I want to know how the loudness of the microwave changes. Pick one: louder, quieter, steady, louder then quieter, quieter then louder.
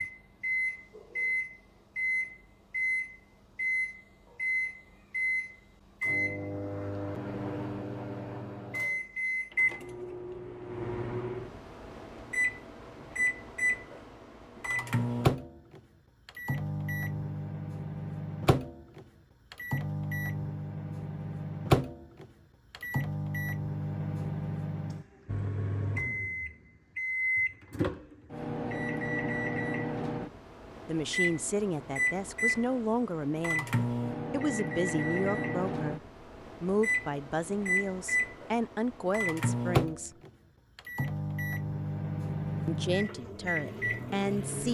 steady.